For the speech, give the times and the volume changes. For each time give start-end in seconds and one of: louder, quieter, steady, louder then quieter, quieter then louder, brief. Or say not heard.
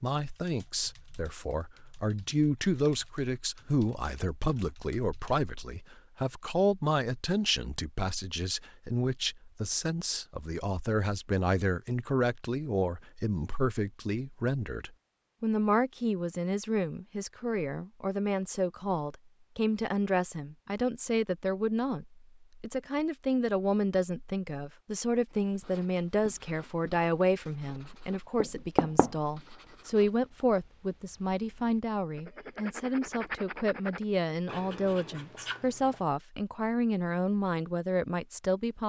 0.0-38.8 steady.